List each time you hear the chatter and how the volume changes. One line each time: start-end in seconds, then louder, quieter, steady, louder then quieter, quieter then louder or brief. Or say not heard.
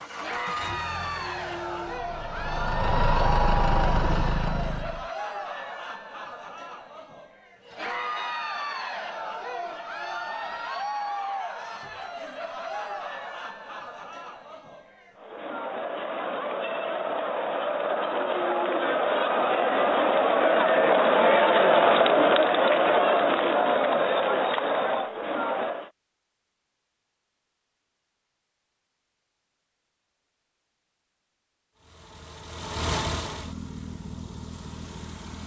0.0-25.9 louder.